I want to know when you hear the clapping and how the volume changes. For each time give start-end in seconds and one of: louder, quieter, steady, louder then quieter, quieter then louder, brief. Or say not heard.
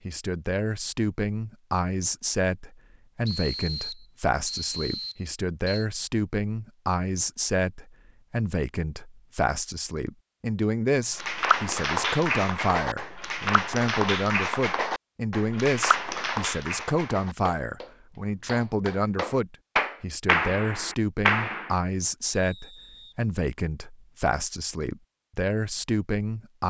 11.2-21.7 quieter then louder.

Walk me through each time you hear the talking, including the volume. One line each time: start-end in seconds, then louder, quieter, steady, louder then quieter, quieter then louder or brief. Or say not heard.
0.1-26.6 steady.